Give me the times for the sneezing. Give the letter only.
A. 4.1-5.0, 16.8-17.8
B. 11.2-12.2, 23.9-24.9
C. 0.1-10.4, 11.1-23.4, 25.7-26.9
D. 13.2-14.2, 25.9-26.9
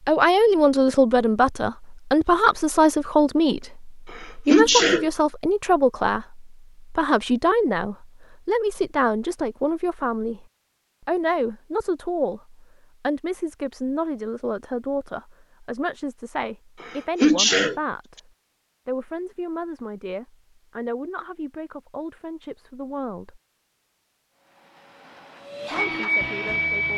A.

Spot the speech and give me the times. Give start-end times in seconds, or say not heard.
0.1-10.4, 11.1-23.4, 25.7-26.9.